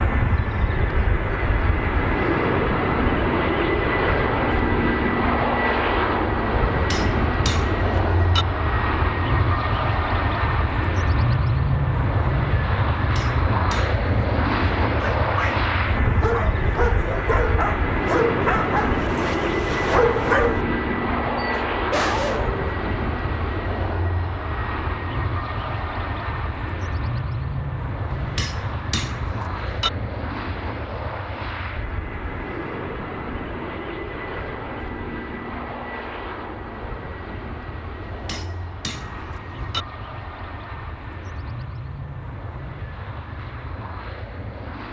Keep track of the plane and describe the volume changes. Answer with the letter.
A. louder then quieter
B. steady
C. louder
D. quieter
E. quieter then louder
D.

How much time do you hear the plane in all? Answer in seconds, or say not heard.
45 s.